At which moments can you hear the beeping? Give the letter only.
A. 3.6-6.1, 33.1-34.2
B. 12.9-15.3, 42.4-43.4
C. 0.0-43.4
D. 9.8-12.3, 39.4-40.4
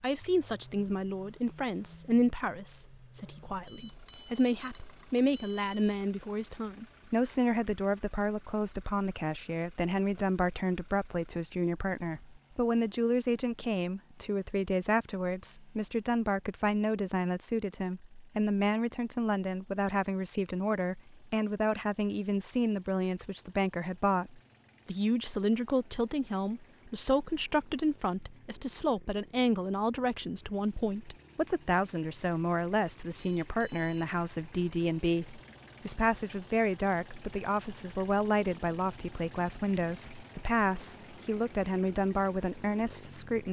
A.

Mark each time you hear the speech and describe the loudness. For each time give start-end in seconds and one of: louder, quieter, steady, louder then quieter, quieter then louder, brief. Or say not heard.
0.0-43.4 steady.